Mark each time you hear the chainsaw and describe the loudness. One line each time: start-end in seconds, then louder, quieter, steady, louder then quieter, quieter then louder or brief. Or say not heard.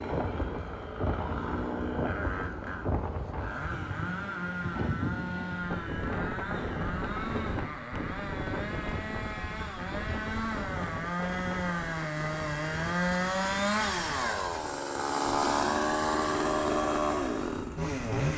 0.0-18.3 louder.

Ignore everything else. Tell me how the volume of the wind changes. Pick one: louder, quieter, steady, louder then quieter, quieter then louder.
quieter.